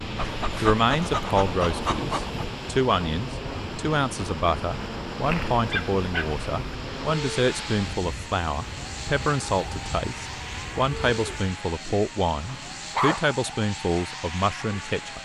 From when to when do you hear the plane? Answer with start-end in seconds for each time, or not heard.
0.0-15.1.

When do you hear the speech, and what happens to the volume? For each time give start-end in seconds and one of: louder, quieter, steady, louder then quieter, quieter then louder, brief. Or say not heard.
0.6-15.1 steady.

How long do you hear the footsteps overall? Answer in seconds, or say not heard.
not heard.